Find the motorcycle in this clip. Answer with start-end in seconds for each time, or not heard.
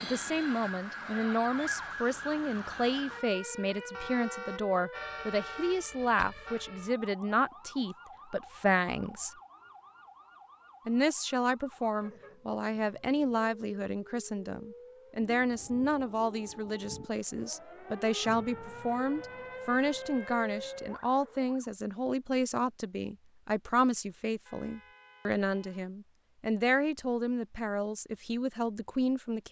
not heard.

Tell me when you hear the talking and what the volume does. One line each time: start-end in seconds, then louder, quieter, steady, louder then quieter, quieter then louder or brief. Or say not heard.
0.0-9.3 steady
10.8-29.4 steady.